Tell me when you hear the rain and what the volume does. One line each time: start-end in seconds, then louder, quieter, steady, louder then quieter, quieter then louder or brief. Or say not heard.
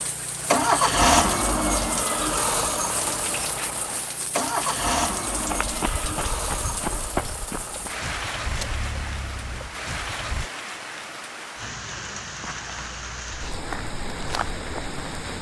0.0-15.3 steady.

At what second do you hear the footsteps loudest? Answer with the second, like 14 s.
7 s.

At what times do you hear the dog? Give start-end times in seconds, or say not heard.
not heard.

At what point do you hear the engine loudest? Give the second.
1 s.